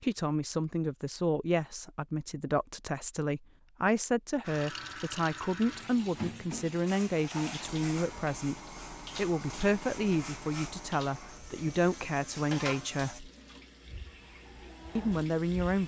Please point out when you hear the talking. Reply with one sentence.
You can hear the talking from 0.0 to 8.6 s, from 9.2 to 13.3 s and from 14.9 to 15.8 s.